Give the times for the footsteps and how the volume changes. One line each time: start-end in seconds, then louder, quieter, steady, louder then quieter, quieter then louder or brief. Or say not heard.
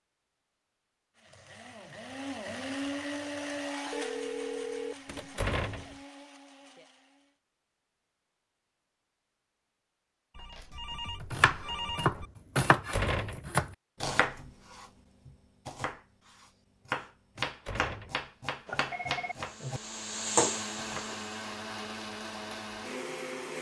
not heard.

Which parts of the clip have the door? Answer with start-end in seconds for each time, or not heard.
5.0-6.0, 12.6-13.5, 17.4-18.2.